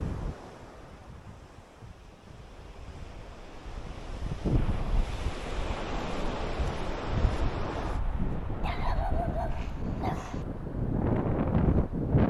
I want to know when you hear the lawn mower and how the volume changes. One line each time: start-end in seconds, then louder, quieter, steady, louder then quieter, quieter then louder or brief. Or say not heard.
not heard.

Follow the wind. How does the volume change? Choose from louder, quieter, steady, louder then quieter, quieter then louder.
louder.